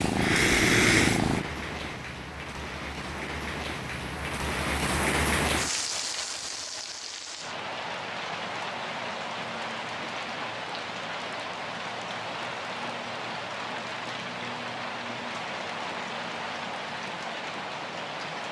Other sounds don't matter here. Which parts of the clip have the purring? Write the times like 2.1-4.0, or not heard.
0.0-2.0.